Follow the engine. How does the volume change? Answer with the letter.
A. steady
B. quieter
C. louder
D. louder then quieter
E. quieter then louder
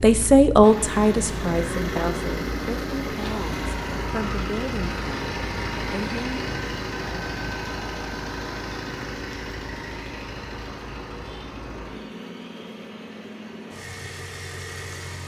B.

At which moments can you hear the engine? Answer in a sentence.
You can hear the engine from 0.0 to 15.2 s.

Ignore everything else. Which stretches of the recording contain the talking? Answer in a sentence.
The talking can be heard from 0.0 to 6.4 s.